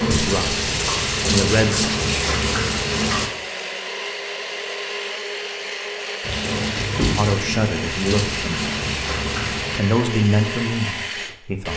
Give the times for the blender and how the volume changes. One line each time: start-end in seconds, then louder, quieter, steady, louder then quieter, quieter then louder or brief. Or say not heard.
0.0-11.7 steady.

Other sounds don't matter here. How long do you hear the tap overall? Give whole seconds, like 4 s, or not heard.
7 s.